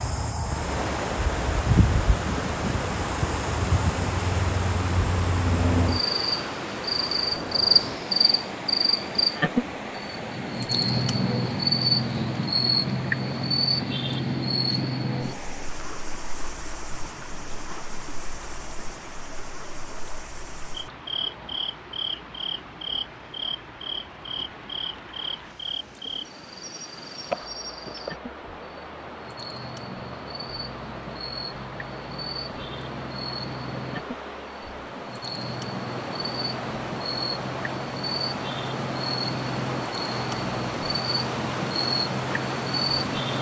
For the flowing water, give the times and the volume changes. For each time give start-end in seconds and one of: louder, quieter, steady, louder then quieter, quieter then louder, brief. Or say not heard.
0.0-43.3 quieter then louder.